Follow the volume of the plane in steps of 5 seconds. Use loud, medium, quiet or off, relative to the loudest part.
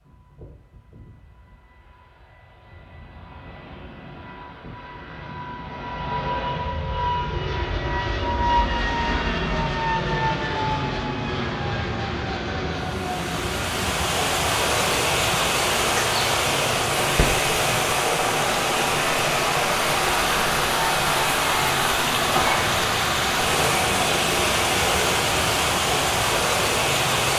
quiet, loud, loud, medium, medium, medium.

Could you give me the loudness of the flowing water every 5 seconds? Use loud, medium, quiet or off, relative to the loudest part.
off, off, loud, loud, loud, loud.